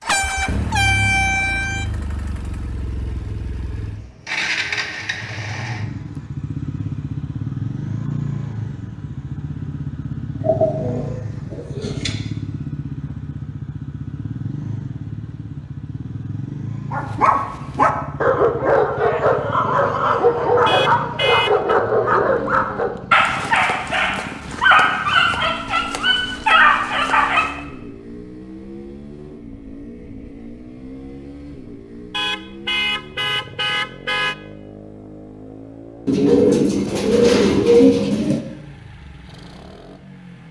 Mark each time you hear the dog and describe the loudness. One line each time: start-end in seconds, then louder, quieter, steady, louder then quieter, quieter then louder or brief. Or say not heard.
16.9-27.6 steady.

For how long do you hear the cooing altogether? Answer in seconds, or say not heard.
4 s.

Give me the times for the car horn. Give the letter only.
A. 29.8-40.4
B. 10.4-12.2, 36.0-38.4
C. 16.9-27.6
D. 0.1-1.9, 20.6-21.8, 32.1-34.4
D.